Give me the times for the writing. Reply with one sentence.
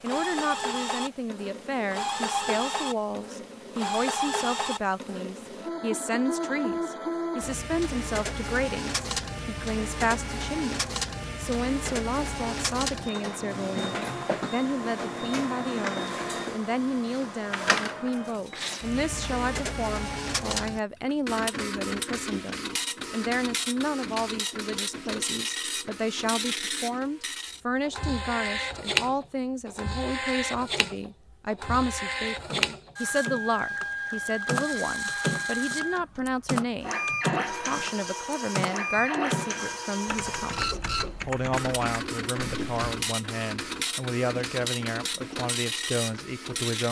The writing can't be heard in this clip.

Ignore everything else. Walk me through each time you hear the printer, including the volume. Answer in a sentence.
You can hear the printer from 0.0 to 46.8 s, at a steady volume.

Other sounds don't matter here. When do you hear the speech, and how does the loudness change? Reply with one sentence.
You can hear the speech from 0.0 to 46.8 s, at a steady volume.